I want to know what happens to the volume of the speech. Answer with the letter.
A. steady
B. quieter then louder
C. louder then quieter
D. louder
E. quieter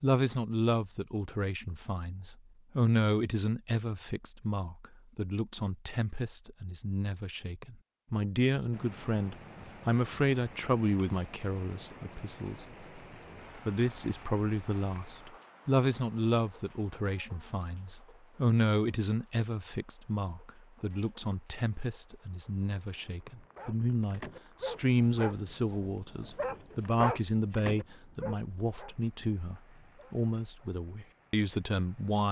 A.